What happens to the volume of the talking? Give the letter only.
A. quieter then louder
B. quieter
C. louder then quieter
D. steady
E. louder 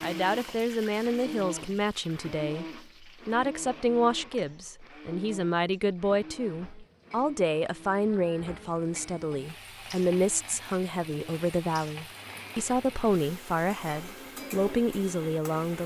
D.